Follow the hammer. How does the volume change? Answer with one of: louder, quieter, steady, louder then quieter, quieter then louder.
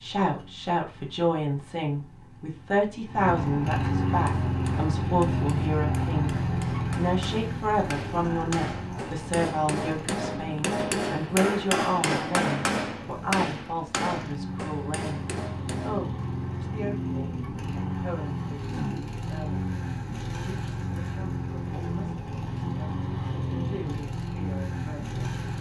louder then quieter.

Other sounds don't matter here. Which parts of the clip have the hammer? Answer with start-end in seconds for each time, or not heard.
4.1-16.1.